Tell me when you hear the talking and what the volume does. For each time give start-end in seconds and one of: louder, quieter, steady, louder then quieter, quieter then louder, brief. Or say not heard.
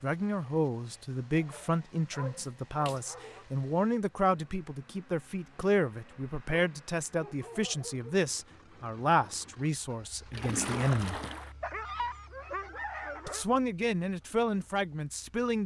0.0-11.2 steady
13.2-15.6 brief.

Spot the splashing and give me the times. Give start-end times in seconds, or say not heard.
2.4-3.0, 10.3-11.6.